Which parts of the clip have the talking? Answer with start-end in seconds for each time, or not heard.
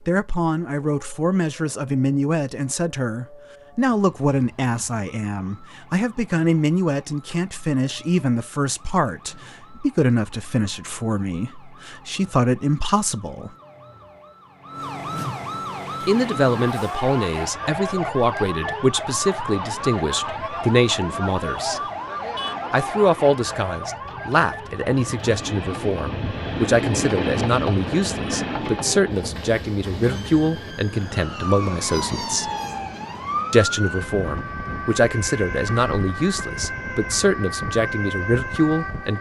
0.1-13.5, 16.1-21.8, 22.7-32.5, 33.5-39.1.